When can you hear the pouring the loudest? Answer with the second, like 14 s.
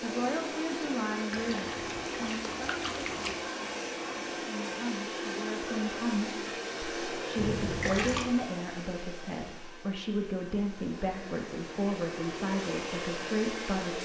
8 s.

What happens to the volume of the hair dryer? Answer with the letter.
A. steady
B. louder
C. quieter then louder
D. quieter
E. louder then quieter
C.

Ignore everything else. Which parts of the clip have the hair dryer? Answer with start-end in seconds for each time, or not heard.
0.0-14.0.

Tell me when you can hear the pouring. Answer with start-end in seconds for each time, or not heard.
1.3-3.4, 7.3-8.2.